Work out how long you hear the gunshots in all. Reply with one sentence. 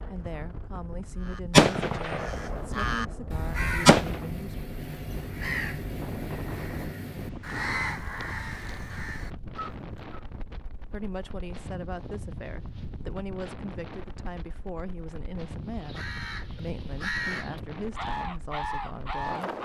You can hear the gunshots for 3 seconds altogether.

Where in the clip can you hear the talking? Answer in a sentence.
You can hear the talking from 0.0 to 4.5 s and from 10.8 to 19.6 s.